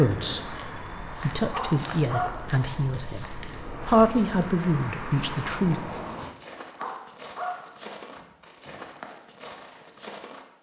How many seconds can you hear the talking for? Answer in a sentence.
The talking can be heard for 4 seconds in total.